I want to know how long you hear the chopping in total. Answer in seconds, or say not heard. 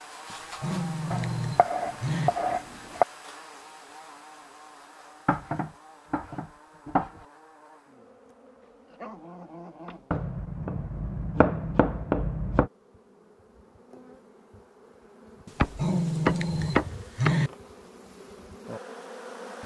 8 s.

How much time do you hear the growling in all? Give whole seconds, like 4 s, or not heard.
6 s.